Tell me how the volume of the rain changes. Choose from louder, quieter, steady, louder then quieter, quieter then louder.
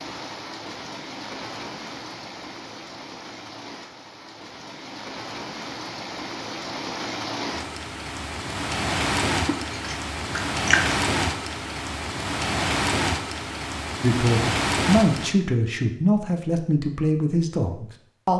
louder.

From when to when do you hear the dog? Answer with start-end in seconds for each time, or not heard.
not heard.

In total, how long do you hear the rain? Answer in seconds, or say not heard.
15 s.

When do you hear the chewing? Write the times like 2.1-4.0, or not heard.
9.4-11.0.